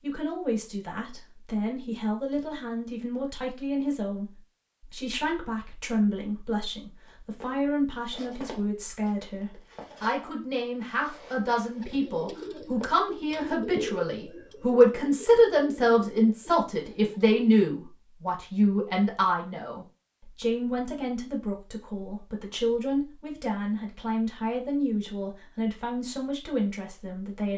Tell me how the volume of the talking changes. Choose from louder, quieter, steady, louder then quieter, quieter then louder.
louder then quieter.